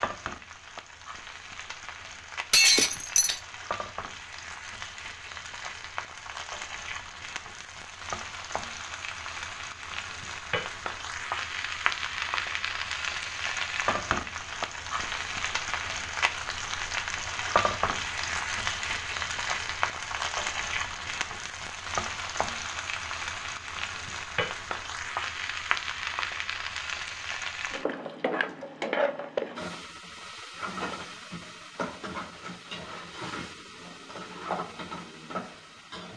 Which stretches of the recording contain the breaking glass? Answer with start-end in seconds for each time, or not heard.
2.5-3.4.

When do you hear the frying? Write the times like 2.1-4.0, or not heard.
0.0-36.1.